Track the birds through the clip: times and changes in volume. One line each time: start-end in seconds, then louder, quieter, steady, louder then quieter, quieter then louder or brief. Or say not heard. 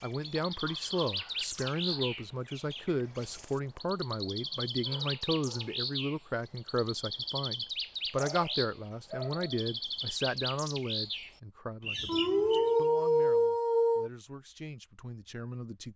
0.0-12.8 steady.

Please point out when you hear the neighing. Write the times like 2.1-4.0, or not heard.
not heard.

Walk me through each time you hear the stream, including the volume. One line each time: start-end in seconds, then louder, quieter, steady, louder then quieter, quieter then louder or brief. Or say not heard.
not heard.